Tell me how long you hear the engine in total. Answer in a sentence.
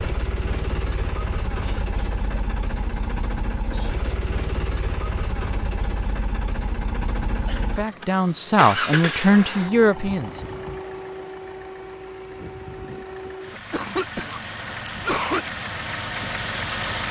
The engine can be heard for 17 seconds in total.